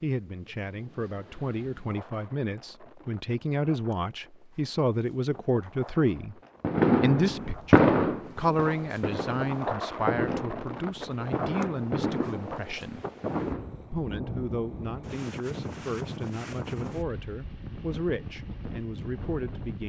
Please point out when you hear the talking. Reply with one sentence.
The talking can be heard from 0.0 to 6.3 s, from 7.0 to 13.1 s and from 13.9 to 19.8 s.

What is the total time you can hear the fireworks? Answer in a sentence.
The fireworks can be heard for 7 seconds in total.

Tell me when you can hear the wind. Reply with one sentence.
You can hear the wind from 0.0 to 19.8 s.